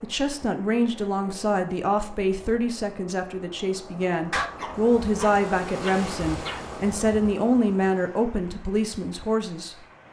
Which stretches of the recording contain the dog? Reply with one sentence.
You can hear the dog from 4.3 to 6.7 s.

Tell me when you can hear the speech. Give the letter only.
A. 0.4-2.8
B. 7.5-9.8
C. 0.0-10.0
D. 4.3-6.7
C.